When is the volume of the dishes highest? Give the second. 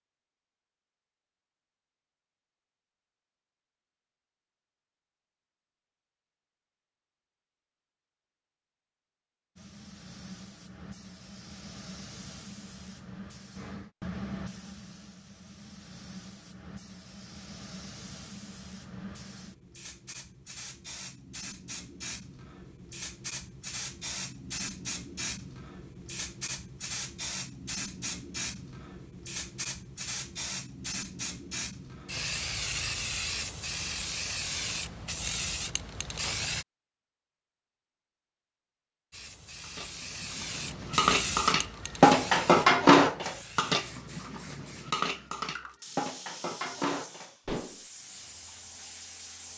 43 s.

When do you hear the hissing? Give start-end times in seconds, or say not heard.
9.6-36.6, 39.1-49.5.